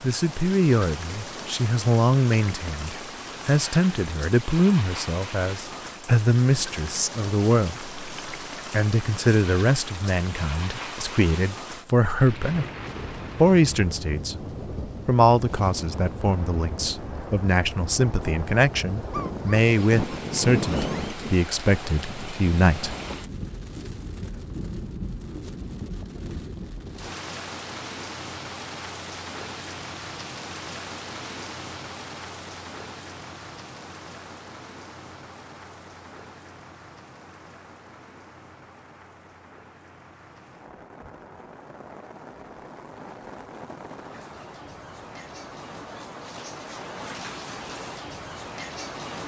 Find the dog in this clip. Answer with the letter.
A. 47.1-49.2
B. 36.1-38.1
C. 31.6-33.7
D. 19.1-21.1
D.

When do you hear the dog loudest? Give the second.
21 s.